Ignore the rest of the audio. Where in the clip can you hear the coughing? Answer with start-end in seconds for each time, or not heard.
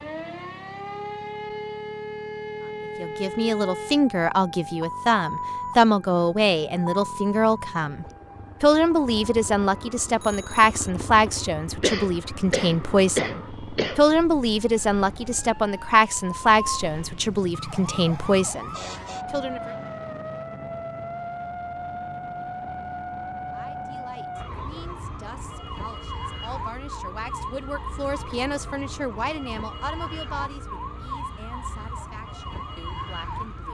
11.8-14.1.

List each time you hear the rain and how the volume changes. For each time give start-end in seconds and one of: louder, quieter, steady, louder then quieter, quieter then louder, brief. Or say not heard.
not heard.